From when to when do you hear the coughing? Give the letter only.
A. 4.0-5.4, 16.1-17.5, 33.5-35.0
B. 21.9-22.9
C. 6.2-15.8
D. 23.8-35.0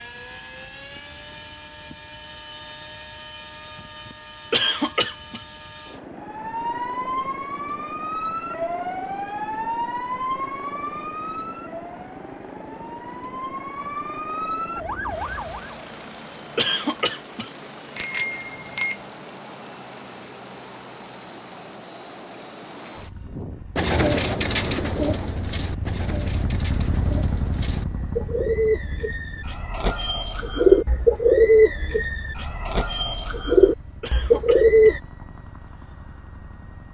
A.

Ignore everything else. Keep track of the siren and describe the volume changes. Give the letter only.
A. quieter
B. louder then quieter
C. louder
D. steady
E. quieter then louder
E.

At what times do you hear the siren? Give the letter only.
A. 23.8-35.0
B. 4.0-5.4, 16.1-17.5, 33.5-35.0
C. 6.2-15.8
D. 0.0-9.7
C.